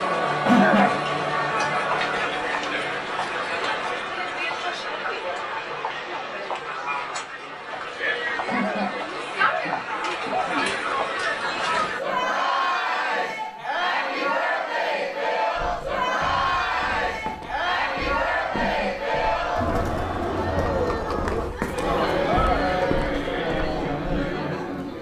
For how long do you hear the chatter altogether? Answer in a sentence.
The chatter can be heard for 25 seconds in total.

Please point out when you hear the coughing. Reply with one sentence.
You can hear the coughing from 0.5 to 0.9 s, from 8.4 to 10.7 s and from 18.5 to 19.8 s.